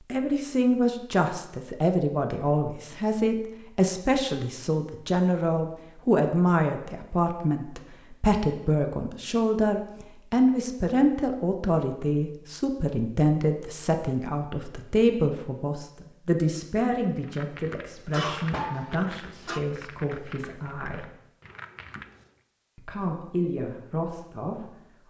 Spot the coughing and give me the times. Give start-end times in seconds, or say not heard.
18.1-19.6.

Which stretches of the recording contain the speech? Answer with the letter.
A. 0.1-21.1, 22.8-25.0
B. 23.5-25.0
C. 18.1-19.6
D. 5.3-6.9
A.